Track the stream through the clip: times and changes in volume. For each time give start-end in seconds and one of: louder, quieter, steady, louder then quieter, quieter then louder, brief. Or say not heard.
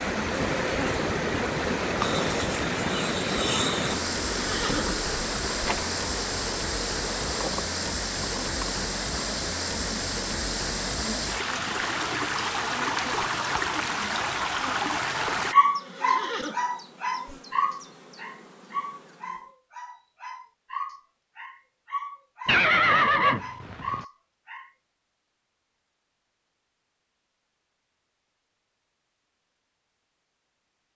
0.0-15.6 steady.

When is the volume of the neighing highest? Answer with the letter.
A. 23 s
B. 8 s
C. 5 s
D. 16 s
A.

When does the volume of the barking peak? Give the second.
16 s.